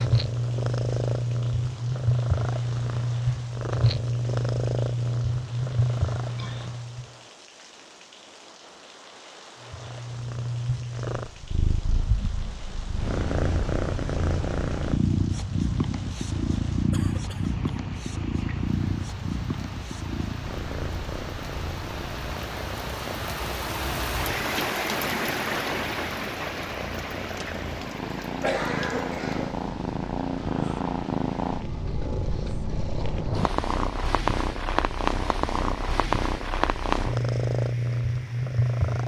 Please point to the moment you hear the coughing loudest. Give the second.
29 s.